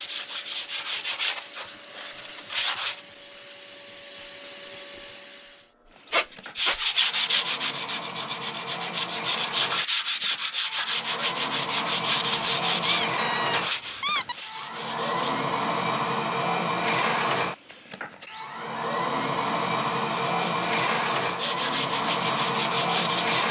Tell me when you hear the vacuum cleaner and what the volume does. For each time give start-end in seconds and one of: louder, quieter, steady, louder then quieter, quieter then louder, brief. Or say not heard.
0.0-23.4 louder.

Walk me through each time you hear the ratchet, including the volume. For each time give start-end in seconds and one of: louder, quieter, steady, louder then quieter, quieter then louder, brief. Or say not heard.
not heard.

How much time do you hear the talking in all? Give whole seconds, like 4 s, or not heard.
not heard.